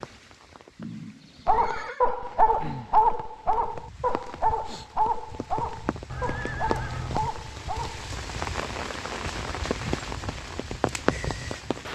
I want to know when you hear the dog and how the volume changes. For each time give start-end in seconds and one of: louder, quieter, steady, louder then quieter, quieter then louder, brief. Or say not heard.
1.4-8.1 quieter.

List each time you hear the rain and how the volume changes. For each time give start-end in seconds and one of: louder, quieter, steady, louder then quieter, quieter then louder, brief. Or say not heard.
0.0-11.9 louder.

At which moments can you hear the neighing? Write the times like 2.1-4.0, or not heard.
0.8-2.0, 6.1-7.2.